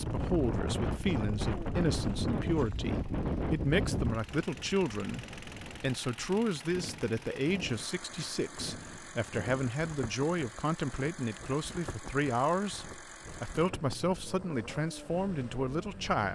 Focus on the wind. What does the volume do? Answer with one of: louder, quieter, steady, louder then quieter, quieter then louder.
quieter.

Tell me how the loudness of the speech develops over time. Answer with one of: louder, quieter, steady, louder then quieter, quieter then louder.
steady.